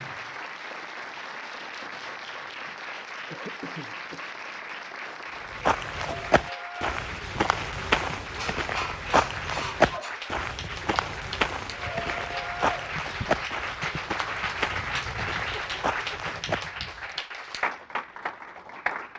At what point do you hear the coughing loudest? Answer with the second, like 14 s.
9 s.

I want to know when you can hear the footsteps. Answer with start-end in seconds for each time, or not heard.
5.5-16.6.